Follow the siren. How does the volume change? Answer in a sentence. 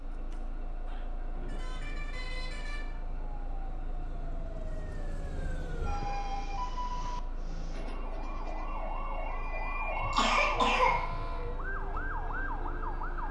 The volume of the siren goes up.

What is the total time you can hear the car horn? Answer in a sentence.
You can hear the car horn for 3 seconds altogether.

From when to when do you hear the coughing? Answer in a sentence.
The coughing can be heard from 9.9 to 11.5 s.